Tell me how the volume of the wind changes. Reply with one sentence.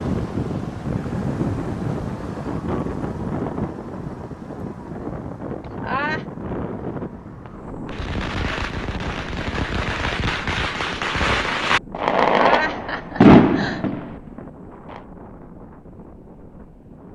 The volume of the wind goes down.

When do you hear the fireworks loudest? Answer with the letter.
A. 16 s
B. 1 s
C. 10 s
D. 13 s
D.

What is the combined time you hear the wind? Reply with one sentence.
You can hear the wind for 17 seconds altogether.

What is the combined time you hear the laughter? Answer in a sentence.
The laughter can be heard for 2 seconds in total.